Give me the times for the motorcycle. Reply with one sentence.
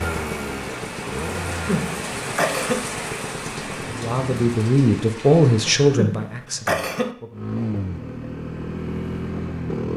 You can hear the motorcycle from 0.0 to 4.5 s and from 7.3 to 9.9 s.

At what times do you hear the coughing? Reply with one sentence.
You can hear the coughing from 1.4 to 2.9 s and from 5.7 to 7.2 s.